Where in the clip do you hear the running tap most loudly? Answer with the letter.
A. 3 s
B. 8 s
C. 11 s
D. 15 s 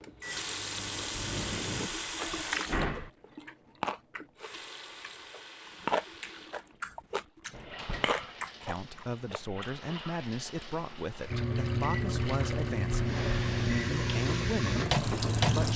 D.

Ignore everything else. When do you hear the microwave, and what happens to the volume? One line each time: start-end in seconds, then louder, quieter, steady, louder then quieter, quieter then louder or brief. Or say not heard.
0.0-1.9 brief
11.3-15.7 steady.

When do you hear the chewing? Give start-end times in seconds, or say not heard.
2.2-9.7.